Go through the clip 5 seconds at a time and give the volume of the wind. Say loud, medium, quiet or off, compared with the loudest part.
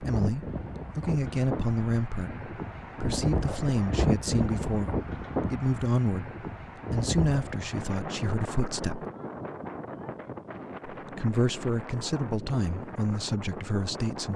loud, loud, medium.